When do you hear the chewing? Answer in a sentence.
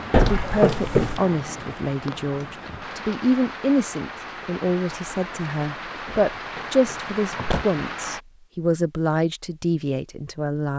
You can't hear the chewing here.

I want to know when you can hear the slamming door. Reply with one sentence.
You can hear the slamming door from 0.1 to 1.2 s and from 6.0 to 7.7 s.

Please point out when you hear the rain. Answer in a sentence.
You can hear the rain from 0.0 to 8.2 s.